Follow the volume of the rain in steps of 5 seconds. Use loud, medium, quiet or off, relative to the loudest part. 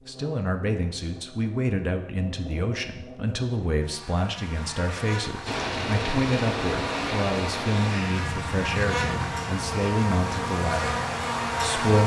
off, loud, medium.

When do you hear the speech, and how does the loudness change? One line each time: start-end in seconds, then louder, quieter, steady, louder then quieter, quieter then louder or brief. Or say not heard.
0.1-12.0 steady.